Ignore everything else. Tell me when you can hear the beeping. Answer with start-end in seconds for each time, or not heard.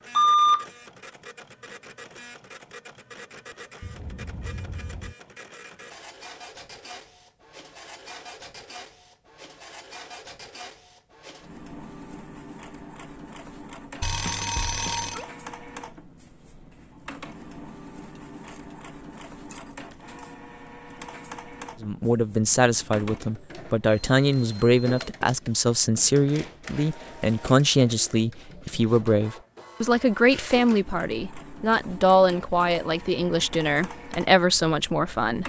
0.1-0.7, 14.0-15.2, 23.9-25.1.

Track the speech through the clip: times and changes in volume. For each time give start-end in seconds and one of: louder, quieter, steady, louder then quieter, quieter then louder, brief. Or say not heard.
21.8-35.4 steady.